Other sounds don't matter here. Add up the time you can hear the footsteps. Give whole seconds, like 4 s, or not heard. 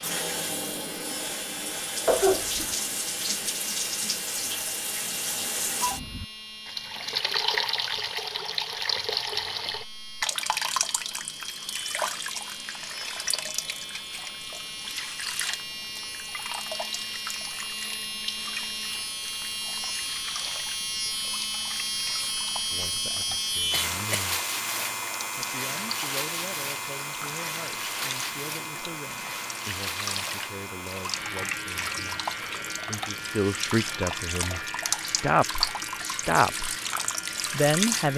not heard.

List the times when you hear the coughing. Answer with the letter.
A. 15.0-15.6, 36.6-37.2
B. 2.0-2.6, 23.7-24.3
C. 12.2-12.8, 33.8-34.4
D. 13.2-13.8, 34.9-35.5
B.